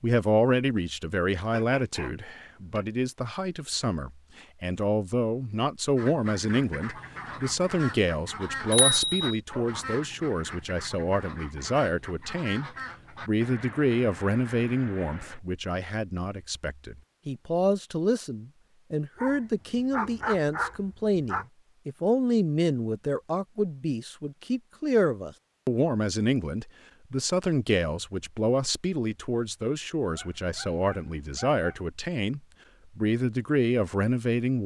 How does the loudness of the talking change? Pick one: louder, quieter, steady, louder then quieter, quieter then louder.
steady.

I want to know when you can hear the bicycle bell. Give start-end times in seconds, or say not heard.
8.7-9.3.